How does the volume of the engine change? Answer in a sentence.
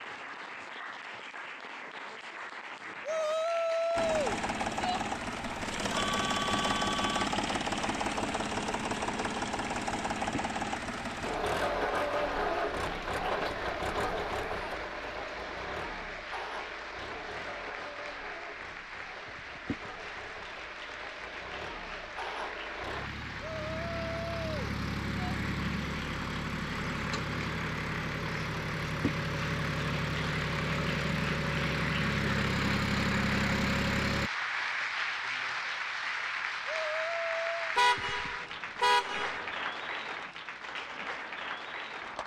The loudness of the engine goes down, then up.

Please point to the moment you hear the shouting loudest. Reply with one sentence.
The volume of the shouting peaks at 4 seconds.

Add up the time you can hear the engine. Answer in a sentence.
You can hear the engine for 30 seconds altogether.